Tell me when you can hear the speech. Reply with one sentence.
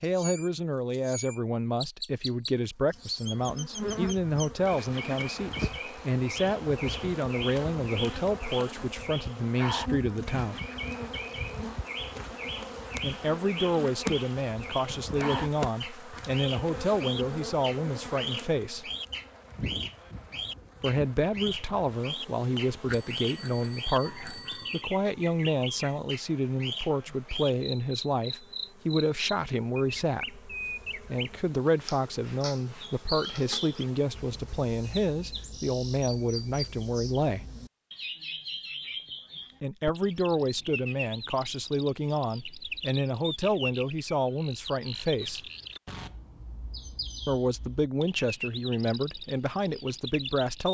You can hear the speech from 0.0 to 10.6 s, from 13.0 to 18.9 s, from 20.8 to 37.5 s, from 39.6 to 45.5 s and from 47.2 to 50.7 s.